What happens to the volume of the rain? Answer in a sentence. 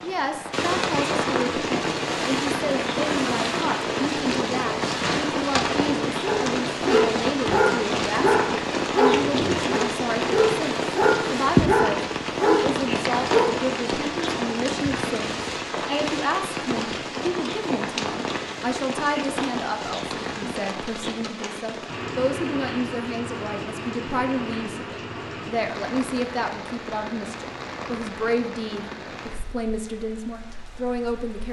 The loudness of the rain goes down.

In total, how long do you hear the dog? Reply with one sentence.
You can hear the dog for 7 seconds altogether.